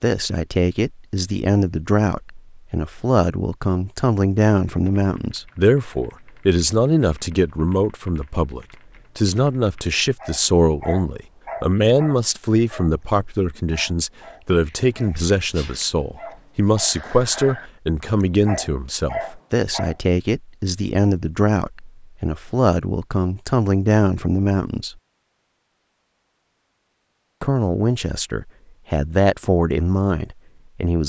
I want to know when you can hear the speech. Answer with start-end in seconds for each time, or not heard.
0.0-24.9, 27.4-31.0.